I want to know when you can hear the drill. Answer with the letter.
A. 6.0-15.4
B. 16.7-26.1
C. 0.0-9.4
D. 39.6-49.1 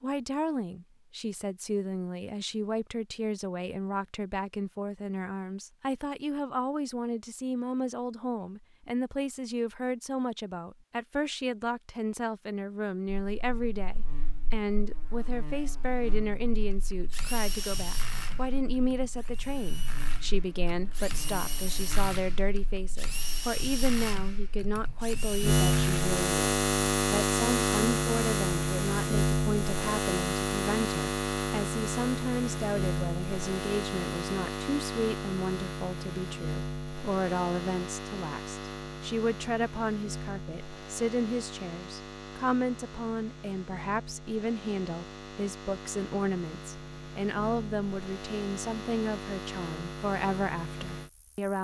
B.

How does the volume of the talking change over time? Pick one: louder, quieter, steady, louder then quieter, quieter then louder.
steady.